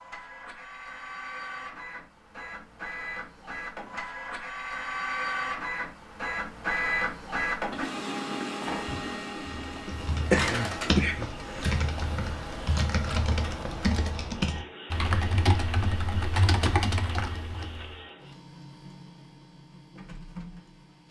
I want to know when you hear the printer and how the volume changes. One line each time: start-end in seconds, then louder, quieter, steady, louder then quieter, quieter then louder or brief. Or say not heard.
0.0-21.0 louder then quieter.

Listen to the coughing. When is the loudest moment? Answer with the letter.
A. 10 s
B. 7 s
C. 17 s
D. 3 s
A.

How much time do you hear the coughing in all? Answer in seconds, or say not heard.
2 s.